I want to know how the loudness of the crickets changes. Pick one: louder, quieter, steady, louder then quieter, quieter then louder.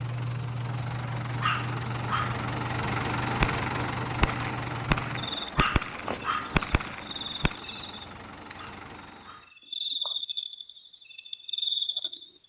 quieter then louder.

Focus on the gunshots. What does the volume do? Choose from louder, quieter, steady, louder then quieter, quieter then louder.
quieter then louder.